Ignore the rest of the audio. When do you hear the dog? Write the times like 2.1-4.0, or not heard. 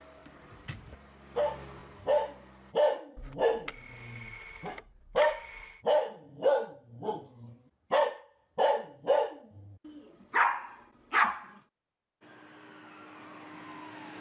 0.7-11.4.